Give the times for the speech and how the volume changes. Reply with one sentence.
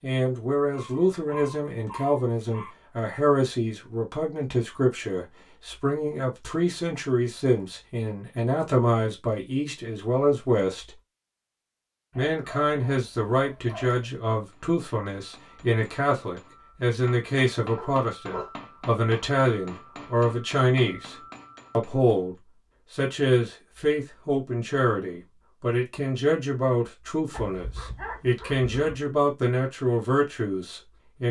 The speech can be heard from 0.0 to 10.9 s, at a steady volume; and from 12.2 to 31.2 s, at a steady volume.